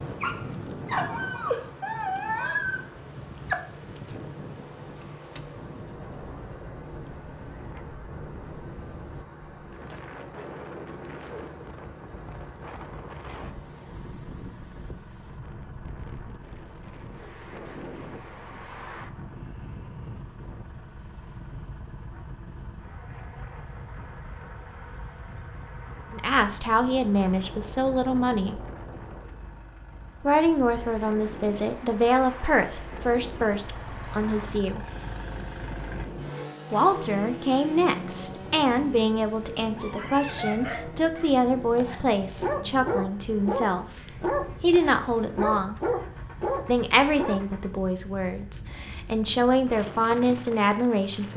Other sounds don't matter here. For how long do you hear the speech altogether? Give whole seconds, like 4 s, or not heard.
21 s.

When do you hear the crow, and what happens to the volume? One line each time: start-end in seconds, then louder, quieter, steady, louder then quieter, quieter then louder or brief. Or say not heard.
not heard.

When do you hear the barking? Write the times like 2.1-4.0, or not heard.
0.0-3.5, 39.8-47.4.